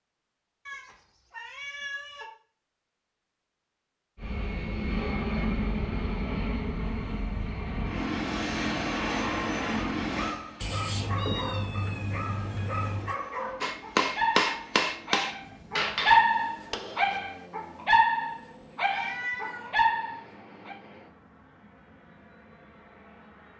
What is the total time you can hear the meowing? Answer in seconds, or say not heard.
5 s.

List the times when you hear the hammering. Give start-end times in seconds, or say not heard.
13.6-17.2.